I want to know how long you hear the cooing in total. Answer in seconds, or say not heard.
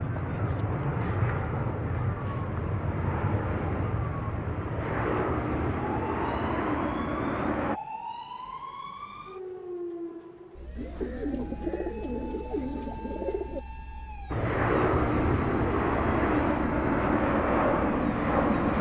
3 s.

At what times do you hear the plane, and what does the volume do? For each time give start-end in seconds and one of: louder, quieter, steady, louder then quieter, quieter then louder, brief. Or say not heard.
0.0-7.8 steady
14.3-18.7 steady.